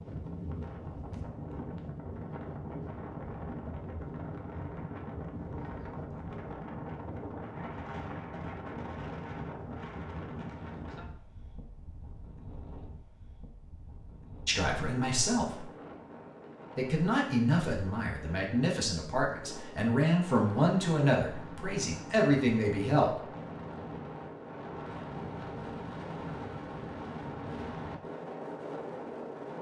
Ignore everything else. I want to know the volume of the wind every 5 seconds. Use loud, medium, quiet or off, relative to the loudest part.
loud, loud, medium, medium, loud, loud.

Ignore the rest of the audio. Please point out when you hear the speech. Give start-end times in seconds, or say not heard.
14.4-15.7, 16.8-23.1.